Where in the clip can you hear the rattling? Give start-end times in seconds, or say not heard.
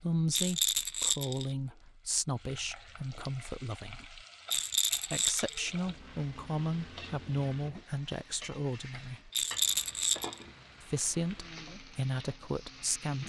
0.3-1.5, 4.5-5.7, 9.3-10.3.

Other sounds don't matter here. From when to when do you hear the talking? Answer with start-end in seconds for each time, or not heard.
0.0-4.2, 5.1-9.3, 10.8-13.2.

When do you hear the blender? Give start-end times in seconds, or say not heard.
not heard.